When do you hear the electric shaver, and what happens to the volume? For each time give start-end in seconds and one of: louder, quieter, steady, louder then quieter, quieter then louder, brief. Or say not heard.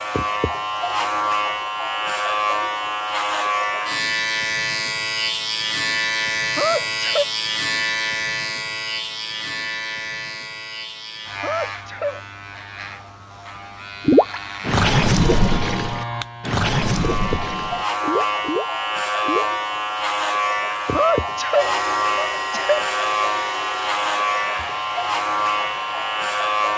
0.0-26.7 quieter then louder.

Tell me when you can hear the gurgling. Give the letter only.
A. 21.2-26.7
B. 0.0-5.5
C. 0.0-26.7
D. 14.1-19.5
D.